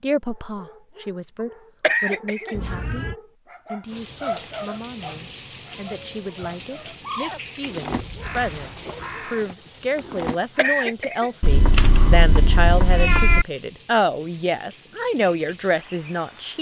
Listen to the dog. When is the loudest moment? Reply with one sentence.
The volume of the dog peaks at 4 seconds.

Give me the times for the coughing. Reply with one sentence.
You can hear the coughing from 1.8 to 2.8 s and from 10.6 to 11.5 s.